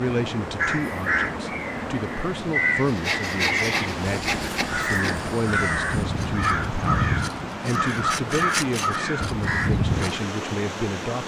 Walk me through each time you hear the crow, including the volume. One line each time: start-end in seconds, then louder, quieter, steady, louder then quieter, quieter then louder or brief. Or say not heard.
0.6-9.8 steady.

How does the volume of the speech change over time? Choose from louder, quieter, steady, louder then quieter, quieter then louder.
steady.